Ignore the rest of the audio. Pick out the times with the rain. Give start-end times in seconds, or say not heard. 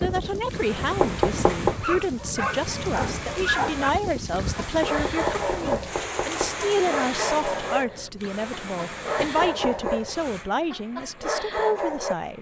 0.0-7.5.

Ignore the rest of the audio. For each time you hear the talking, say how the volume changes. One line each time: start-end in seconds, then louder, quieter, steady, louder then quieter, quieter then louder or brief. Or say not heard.
0.0-12.3 steady.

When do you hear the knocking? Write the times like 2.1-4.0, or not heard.
1.0-1.8, 4.8-6.5, 9.2-10.1.